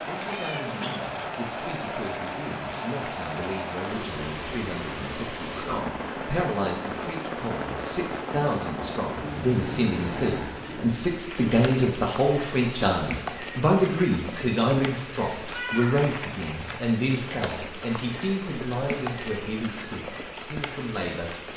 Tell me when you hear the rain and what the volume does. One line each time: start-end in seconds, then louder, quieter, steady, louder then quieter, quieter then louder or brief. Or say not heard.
0.0-21.5 steady.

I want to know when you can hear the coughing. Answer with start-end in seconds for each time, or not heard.
0.7-1.4.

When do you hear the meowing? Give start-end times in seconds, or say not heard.
0.2-0.7, 15.4-16.0.